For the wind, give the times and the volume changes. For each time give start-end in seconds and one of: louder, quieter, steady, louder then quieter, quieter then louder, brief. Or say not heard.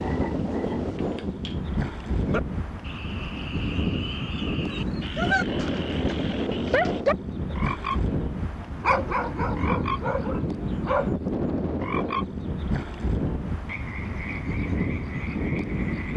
0.0-16.1 steady.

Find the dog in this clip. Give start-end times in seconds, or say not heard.
4.7-7.5, 8.8-11.1.